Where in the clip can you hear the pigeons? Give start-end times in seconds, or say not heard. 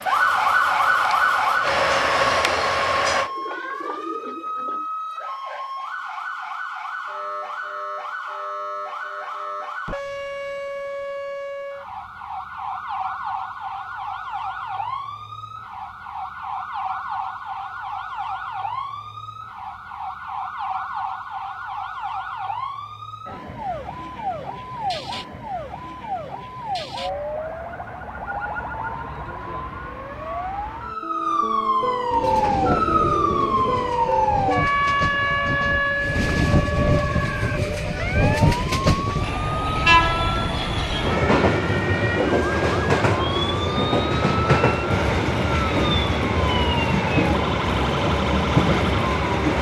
2.4-4.8, 32.1-34.0.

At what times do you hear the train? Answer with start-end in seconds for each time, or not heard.
0.0-3.3, 32.2-49.5.